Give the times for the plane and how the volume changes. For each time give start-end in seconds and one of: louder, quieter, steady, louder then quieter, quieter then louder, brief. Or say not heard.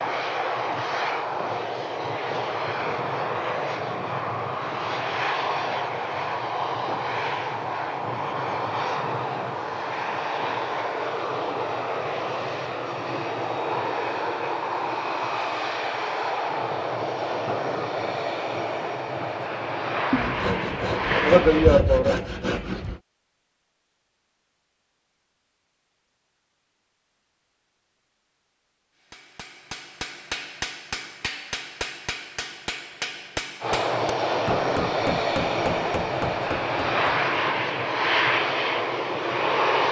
0.0-21.8 steady
33.6-39.8 steady.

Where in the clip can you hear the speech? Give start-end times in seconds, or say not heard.
not heard.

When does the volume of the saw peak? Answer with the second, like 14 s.
22 s.